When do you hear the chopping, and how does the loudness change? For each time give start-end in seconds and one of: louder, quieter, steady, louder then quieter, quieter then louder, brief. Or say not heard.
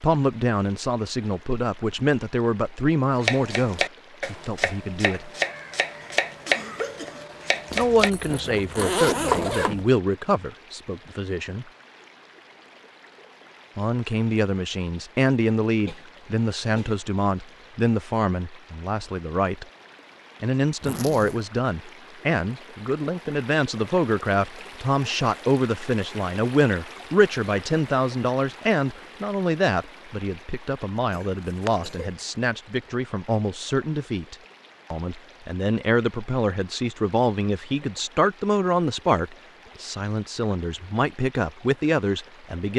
3.2-9.7 quieter.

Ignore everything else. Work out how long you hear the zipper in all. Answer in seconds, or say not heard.
3 s.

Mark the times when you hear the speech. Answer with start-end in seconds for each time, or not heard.
0.0-5.3, 7.8-11.7, 13.8-19.6, 20.4-42.7.